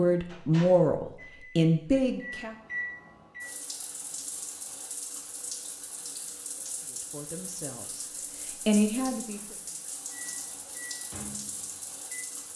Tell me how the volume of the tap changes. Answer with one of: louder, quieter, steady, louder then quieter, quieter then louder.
steady.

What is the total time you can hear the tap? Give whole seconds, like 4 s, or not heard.
9 s.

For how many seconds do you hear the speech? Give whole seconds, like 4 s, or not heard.
5 s.